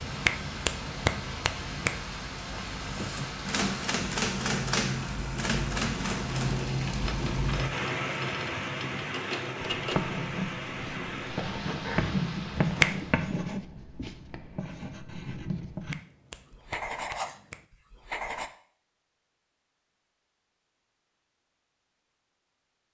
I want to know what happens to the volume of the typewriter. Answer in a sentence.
The loudness of the typewriter goes down.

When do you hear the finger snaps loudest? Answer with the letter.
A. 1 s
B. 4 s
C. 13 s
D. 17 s
C.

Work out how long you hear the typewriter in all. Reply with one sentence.
You can hear the typewriter for 8 seconds altogether.